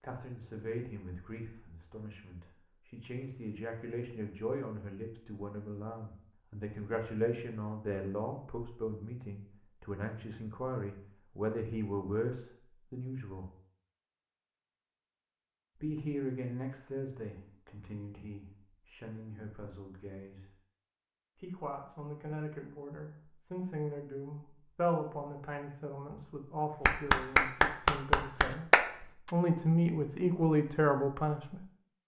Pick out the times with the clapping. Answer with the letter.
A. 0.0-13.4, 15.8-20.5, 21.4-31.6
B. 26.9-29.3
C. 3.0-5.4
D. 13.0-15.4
B.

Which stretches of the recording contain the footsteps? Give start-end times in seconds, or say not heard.
not heard.